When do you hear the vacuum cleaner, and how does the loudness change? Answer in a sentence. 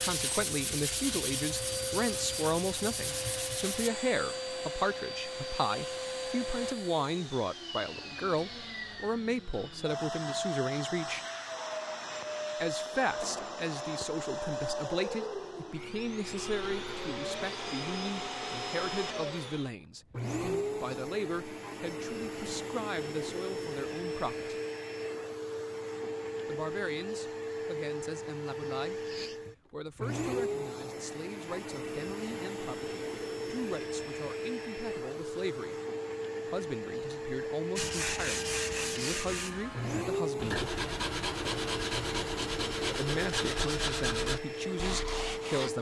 The vacuum cleaner can be heard from 0.0 to 45.7 s, at a steady volume.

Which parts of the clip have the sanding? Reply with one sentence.
You can hear the sanding from 0.0 to 3.9 s and from 37.8 to 45.7 s.